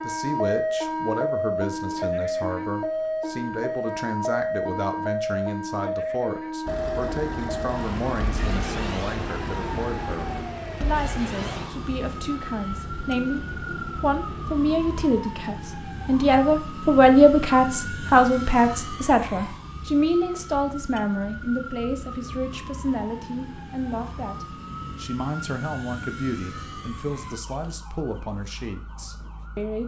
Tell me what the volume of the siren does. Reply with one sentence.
The loudness of the siren goes down.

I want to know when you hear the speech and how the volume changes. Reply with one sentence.
You can hear the speech from 0.0 to 29.8 s, getting louder then quieter.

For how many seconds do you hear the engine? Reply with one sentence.
The engine can be heard for 8 seconds in total.